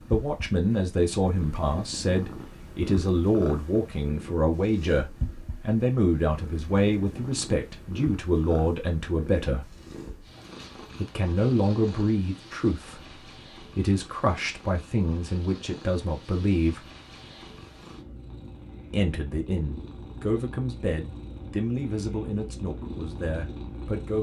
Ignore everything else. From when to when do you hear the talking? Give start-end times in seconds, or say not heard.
0.1-9.7, 11.0-16.9, 18.9-24.1.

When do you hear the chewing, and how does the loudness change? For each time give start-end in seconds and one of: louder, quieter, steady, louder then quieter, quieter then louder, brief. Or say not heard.
not heard.